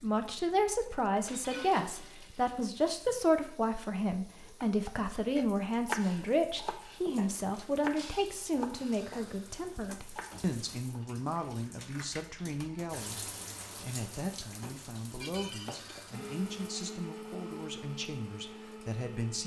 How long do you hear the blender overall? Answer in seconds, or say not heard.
3 s.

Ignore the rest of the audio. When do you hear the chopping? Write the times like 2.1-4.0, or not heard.
4.6-11.0.